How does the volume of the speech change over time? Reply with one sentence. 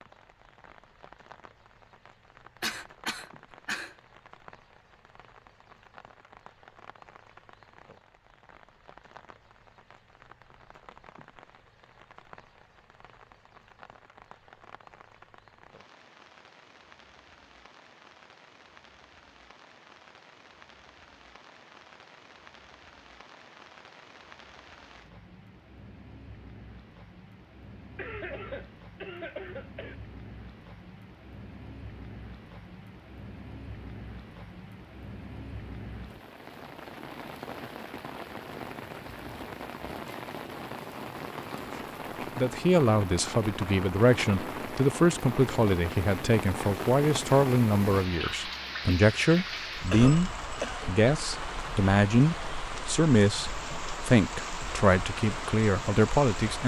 The volume of the speech stays about the same.